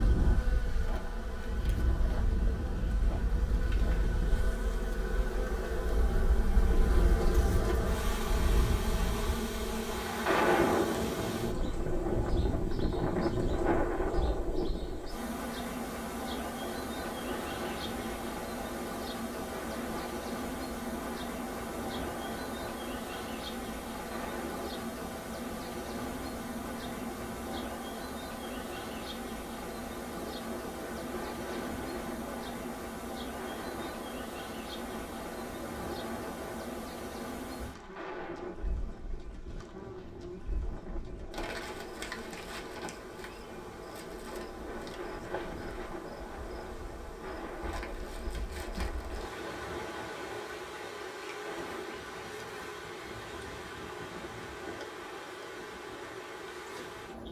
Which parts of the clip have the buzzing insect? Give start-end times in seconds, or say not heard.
0.0-57.2.